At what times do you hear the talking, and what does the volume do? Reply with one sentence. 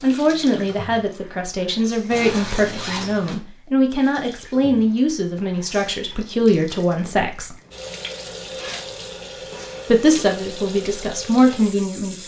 You can hear the talking from 0.0 to 7.5 s, at a steady volume; and briefly from 9.8 to 12.2 s.